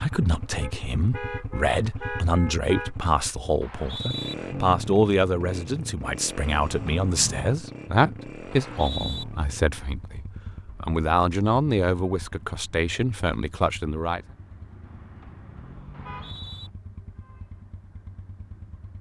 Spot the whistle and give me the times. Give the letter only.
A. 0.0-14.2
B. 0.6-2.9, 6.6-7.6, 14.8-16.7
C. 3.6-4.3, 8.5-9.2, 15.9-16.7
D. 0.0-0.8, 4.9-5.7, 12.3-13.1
C.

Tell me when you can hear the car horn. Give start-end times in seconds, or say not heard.
0.6-2.9, 6.6-7.6, 14.8-16.7.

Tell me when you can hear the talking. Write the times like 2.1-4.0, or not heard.
0.0-14.2.